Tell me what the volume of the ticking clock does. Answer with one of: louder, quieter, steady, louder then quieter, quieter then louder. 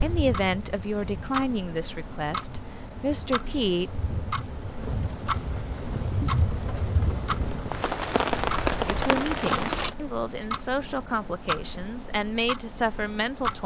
steady.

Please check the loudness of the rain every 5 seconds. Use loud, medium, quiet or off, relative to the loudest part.
medium, loud, off.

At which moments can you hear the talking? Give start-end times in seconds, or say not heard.
0.0-3.9, 8.8-13.6.